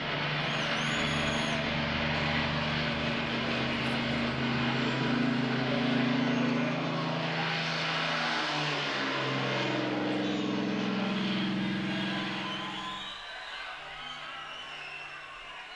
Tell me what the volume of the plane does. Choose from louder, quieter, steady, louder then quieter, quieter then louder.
steady.